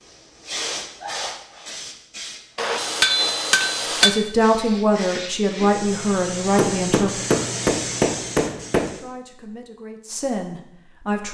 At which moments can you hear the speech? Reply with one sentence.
The speech can be heard from 4.0 to 7.2 s and from 8.8 to 11.3 s.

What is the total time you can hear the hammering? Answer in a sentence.
You can hear the hammering for 4 seconds altogether.